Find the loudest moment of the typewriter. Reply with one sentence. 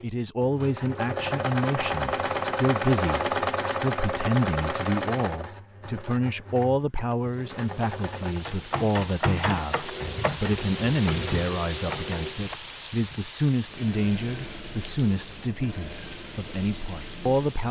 The loudest moment of the typewriter is at 9 seconds.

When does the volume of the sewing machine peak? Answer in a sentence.
The volume of the sewing machine peaks at 3 seconds.